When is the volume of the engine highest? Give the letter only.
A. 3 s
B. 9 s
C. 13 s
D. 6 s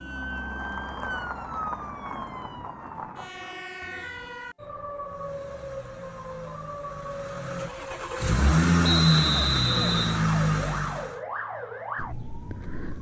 B.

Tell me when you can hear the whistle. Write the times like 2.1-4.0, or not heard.
8.8-10.2.